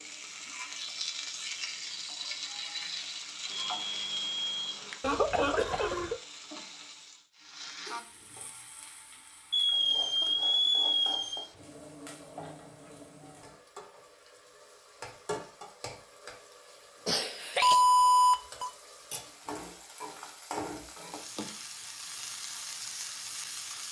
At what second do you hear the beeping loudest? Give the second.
18 s.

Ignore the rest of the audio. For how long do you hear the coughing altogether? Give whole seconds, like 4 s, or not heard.
2 s.